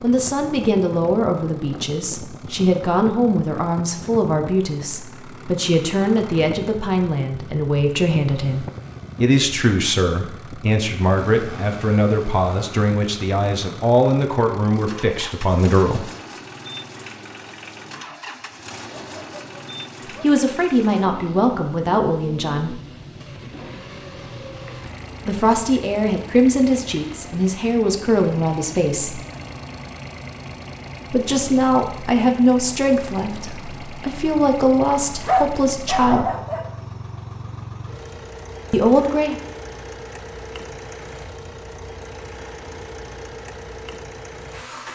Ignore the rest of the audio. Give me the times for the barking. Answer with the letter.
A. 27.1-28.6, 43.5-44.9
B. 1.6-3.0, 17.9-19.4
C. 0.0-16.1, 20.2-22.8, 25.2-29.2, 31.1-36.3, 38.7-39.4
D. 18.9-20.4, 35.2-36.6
D.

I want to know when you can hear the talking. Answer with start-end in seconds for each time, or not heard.
0.0-16.1, 20.2-22.8, 25.2-29.2, 31.1-36.3, 38.7-39.4.